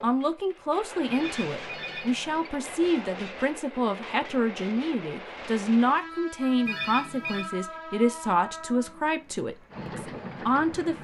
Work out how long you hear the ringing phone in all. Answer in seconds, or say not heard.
2 s.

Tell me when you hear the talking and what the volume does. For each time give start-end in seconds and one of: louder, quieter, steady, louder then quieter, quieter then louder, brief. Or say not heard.
0.0-10.9 steady.